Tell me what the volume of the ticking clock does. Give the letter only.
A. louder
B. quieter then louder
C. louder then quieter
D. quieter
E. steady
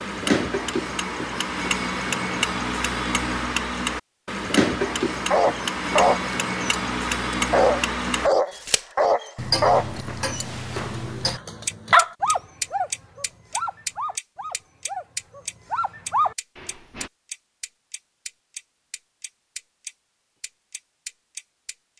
D.